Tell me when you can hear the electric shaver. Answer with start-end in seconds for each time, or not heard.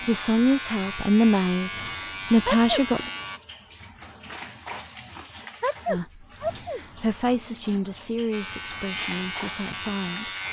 0.0-3.4, 8.3-10.4.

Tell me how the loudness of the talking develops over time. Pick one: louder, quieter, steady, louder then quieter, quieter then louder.
quieter.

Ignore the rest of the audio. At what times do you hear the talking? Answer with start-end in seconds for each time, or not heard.
0.1-3.1, 5.8-10.3.